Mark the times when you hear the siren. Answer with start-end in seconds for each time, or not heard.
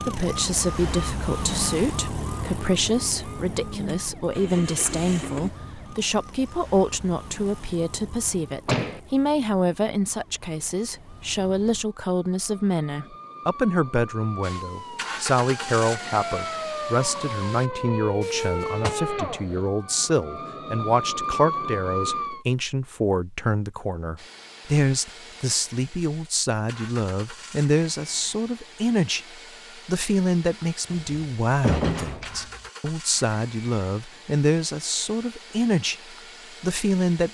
0.0-22.4.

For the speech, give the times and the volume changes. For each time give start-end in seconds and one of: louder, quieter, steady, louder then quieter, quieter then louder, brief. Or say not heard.
0.0-29.2 steady
29.9-36.0 steady
36.6-37.3 brief.